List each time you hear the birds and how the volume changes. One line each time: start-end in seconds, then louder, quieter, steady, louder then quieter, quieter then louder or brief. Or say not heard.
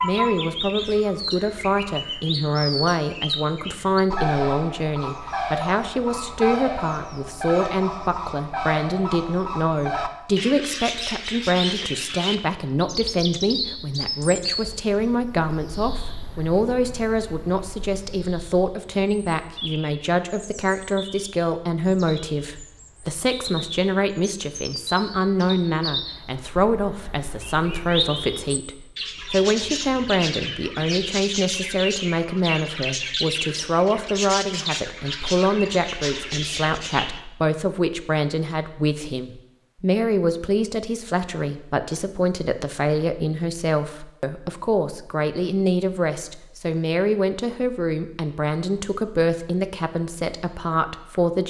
0.0-37.2 quieter then louder.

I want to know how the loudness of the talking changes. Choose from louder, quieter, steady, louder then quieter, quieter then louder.
steady.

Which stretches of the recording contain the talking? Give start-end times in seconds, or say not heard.
0.0-51.4.